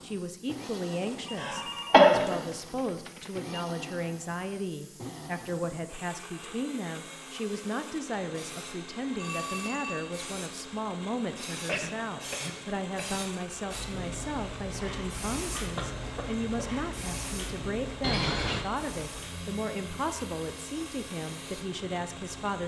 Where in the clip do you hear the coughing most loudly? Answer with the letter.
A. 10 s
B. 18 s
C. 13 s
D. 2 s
D.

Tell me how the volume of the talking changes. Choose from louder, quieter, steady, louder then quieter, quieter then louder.
steady.